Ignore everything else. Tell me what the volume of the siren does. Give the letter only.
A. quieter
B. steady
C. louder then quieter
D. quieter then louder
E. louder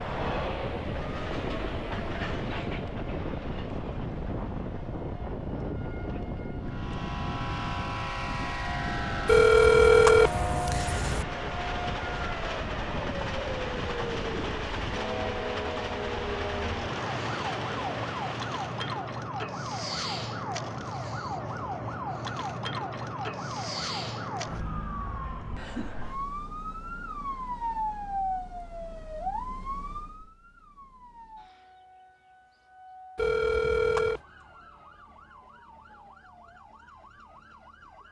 A.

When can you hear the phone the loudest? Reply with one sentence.
The loudest moment of the phone is at 10 seconds.